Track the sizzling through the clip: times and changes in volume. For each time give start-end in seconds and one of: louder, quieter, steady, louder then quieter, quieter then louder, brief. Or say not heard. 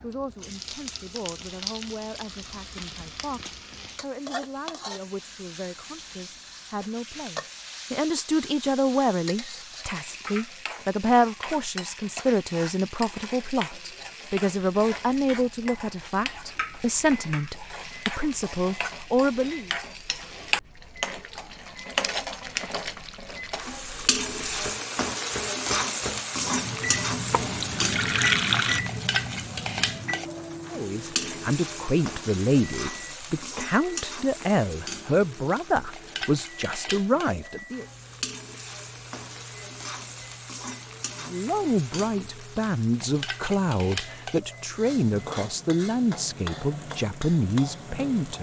0.0-48.3 louder then quieter.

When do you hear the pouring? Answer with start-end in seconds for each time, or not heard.
27.3-28.8.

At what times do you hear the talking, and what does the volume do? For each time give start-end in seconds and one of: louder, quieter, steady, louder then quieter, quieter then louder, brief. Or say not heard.
0.0-19.7 louder
30.7-37.9 steady
41.2-48.3 steady.